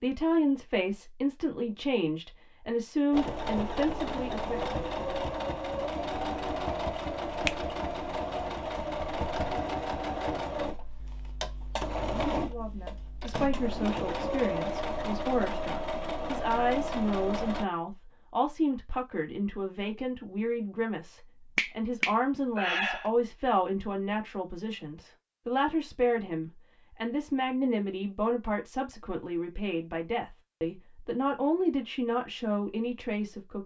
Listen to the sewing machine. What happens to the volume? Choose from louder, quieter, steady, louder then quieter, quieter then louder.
steady.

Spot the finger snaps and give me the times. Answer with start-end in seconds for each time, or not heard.
21.6-23.1.